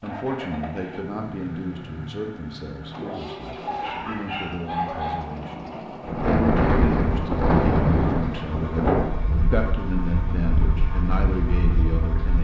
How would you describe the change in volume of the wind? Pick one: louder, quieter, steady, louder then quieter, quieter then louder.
quieter.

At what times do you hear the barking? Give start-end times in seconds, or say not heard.
3.6-5.2.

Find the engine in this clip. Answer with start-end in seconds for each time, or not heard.
0.0-12.3.